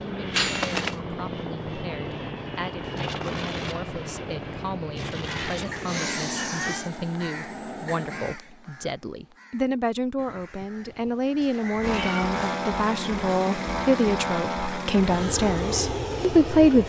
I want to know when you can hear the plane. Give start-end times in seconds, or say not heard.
0.0-8.4, 11.8-16.8.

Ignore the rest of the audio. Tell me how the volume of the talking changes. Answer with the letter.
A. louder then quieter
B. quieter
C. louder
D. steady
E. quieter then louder
C.